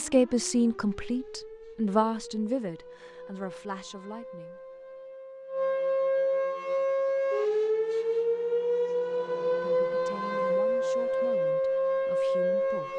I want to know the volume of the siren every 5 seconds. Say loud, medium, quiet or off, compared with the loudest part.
quiet, loud, loud.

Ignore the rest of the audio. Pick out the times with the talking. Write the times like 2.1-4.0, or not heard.
0.0-4.6, 9.4-12.9.